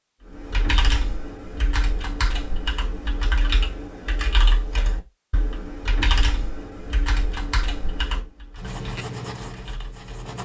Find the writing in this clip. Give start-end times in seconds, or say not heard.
8.6-10.3.